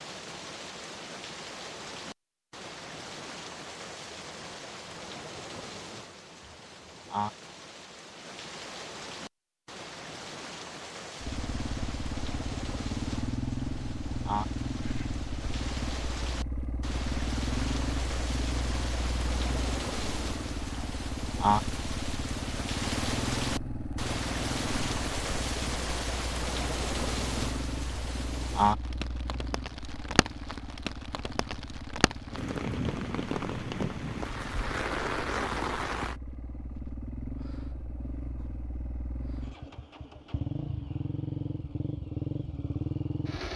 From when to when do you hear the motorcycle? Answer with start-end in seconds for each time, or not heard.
11.2-43.5.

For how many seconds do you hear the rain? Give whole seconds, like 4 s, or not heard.
36 s.